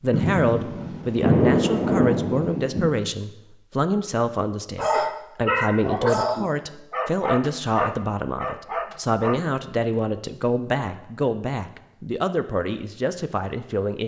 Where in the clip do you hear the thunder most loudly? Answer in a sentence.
The volume of the thunder peaks at 1 second.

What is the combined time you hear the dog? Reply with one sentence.
The dog can be heard for 5 seconds in total.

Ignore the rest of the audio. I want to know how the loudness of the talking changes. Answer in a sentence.
The volume of the talking stays about the same.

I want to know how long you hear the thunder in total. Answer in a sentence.
The thunder can be heard for 3 seconds in total.